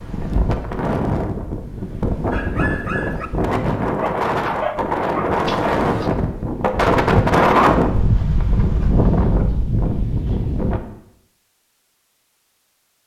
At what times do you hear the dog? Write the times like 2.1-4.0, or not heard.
2.3-6.1.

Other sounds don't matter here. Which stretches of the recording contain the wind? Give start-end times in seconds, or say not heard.
0.0-10.8.